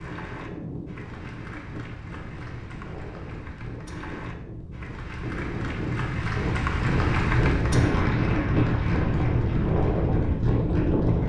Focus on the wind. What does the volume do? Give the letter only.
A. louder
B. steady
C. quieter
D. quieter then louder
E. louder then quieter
A.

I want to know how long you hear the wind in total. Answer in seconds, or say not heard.
11 s.